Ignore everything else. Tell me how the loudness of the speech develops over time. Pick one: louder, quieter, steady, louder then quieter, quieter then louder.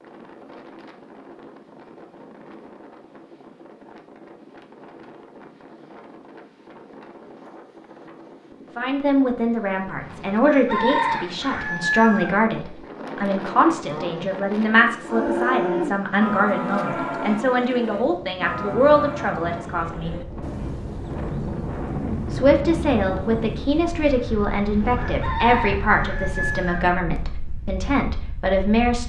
steady.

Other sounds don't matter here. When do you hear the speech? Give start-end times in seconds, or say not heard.
8.8-20.2, 22.3-29.0.